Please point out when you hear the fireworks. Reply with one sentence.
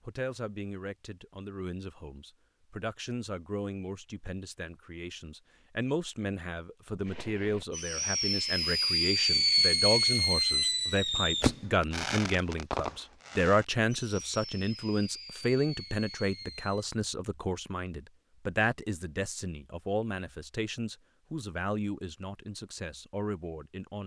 You can hear the fireworks from 7.0 to 16.9 s.